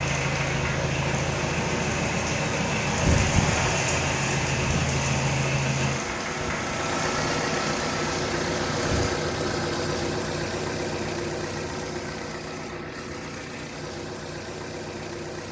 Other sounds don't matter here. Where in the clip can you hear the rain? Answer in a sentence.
The rain can be heard from 0.0 to 9.1 s.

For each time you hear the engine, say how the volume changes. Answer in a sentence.
You can hear the engine from 0.0 to 15.4 s, getting quieter.